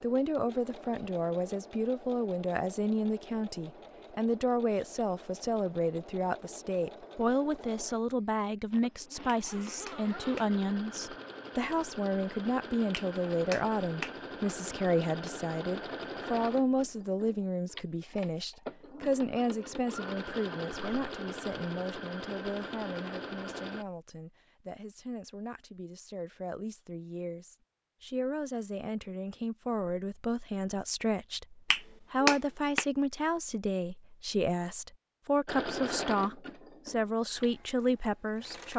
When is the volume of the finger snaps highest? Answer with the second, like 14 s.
32 s.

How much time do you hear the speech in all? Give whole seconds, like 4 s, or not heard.
39 s.